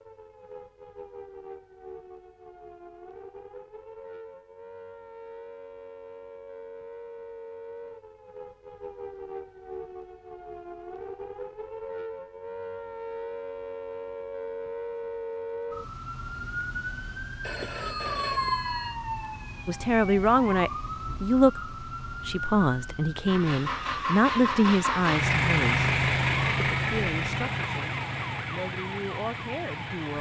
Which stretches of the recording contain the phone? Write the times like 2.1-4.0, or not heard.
17.4-18.9.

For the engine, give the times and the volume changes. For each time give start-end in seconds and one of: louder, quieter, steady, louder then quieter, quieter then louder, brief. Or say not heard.
23.2-30.1 louder then quieter.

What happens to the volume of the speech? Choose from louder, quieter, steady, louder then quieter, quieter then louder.
quieter.